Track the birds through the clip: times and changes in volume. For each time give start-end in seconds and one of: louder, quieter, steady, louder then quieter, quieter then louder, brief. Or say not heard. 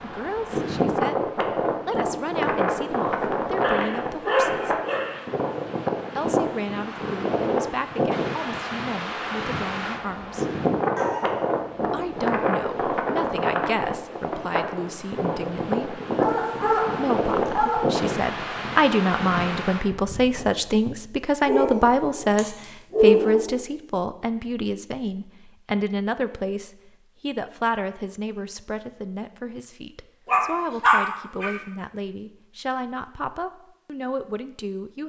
not heard.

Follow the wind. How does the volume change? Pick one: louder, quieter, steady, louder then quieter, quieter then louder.
steady.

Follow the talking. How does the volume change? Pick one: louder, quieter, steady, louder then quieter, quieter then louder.
louder then quieter.